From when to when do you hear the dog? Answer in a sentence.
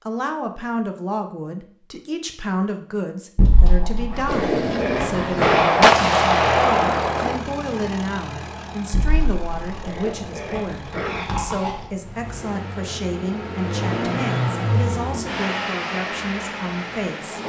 The dog can be heard from 3.4 to 5.7 s and from 8.9 to 11.8 s.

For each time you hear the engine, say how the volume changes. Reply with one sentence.
You can hear the engine from 4.2 to 17.4 s, getting quieter then louder.